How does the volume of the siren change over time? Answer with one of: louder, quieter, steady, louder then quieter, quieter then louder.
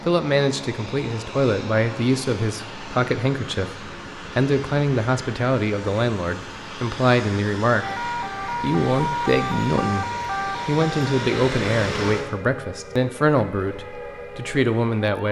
quieter.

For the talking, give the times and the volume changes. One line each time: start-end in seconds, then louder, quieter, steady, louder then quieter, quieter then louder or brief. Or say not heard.
0.1-15.2 steady.